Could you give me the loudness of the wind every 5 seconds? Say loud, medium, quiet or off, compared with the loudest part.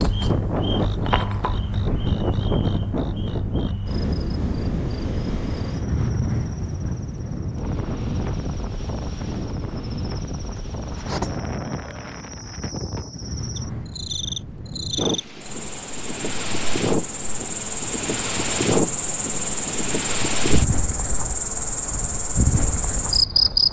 loud, loud, medium, loud, loud.